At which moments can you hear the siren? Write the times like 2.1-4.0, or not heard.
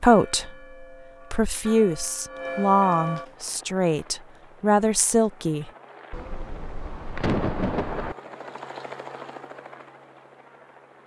not heard.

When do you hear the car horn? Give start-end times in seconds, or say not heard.
not heard.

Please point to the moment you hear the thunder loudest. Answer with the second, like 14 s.
7 s.